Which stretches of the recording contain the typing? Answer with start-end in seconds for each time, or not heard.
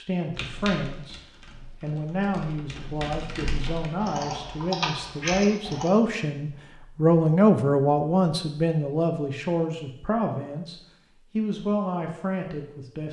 0.3-5.9.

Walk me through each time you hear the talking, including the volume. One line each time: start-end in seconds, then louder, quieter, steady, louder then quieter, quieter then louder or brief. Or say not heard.
0.0-13.0 louder then quieter.